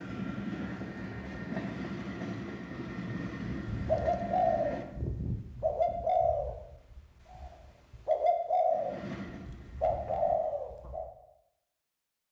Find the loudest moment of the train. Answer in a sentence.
The volume of the train peaks at 2 seconds.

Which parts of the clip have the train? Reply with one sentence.
The train can be heard from 0.0 to 4.8 s and from 8.7 to 10.3 s.